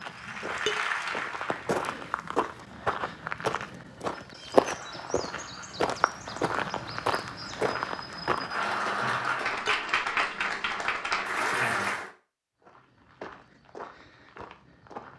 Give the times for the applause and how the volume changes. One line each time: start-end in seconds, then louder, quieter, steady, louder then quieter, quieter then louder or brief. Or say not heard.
0.0-2.2 brief
4.6-12.1 louder.